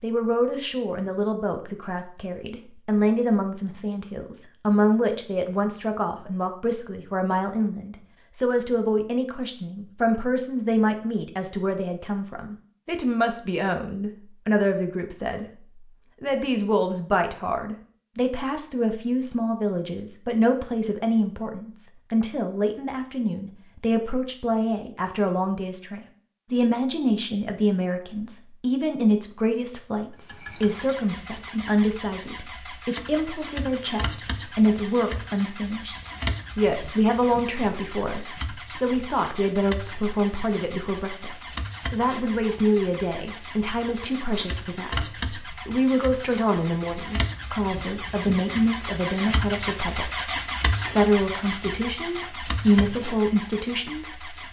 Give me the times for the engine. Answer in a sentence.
You can hear the engine from 30.2 to 54.4 s.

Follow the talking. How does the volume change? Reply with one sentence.
The volume of the talking stays about the same.